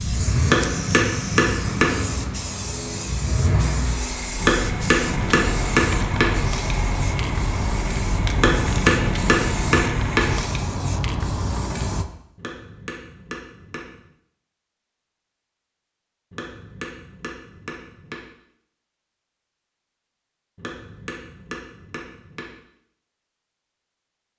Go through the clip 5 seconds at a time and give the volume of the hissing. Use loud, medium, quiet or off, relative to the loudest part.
medium, loud, loud, off, off.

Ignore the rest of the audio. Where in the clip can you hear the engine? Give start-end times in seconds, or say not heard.
0.0-10.3.